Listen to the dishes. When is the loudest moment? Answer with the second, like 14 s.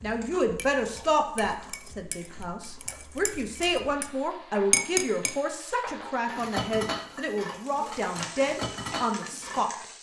5 s.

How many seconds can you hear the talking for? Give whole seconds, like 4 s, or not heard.
10 s.